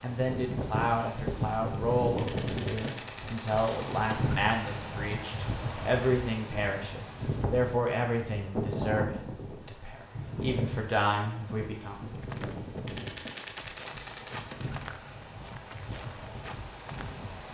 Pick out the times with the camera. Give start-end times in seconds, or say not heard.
2.1-3.9, 12.8-14.8.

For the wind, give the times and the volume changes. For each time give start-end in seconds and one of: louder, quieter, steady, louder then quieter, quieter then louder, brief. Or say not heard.
0.0-17.5 quieter.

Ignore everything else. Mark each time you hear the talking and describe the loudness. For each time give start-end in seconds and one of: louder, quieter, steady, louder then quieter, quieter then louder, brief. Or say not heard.
0.0-12.0 steady.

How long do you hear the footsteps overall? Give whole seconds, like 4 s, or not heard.
5 s.